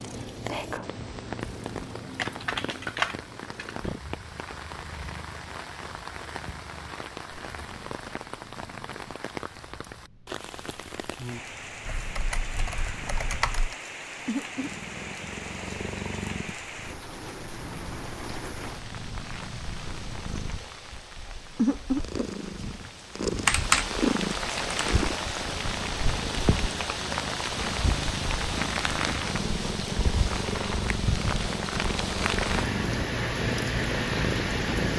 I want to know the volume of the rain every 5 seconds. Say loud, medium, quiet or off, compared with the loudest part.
medium, medium, medium, medium, medium, loud, loud.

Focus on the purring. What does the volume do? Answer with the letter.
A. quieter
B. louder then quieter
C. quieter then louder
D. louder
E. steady
C.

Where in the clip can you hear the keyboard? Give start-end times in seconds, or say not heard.
2.1-3.9, 11.8-13.8, 23.4-24.9.